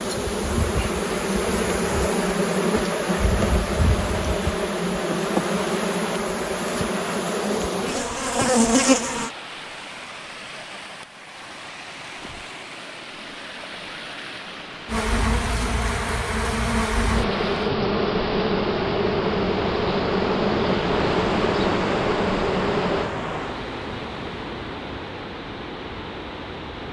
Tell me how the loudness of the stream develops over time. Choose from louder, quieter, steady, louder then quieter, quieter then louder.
louder.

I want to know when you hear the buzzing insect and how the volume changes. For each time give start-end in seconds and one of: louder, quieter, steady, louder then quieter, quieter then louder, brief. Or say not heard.
0.0-9.3 steady
14.8-23.1 steady.